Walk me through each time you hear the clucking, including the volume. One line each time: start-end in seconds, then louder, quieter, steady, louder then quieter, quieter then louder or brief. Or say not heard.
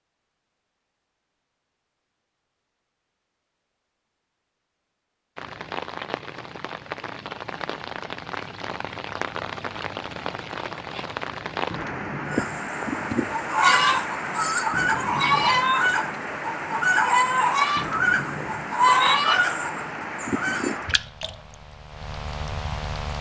12.2-20.8 steady.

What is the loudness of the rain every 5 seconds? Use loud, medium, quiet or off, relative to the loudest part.
off, loud, loud, loud, loud.